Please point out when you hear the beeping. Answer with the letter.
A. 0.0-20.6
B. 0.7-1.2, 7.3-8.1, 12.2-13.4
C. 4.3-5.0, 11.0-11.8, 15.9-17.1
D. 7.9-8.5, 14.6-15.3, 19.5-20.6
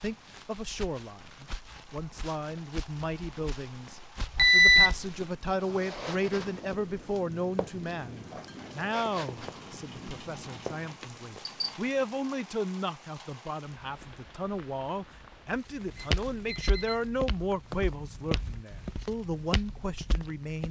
C.